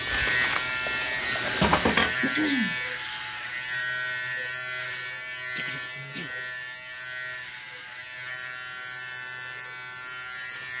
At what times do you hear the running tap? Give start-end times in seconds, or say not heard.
0.0-2.4.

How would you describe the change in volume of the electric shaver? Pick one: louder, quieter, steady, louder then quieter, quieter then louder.
quieter.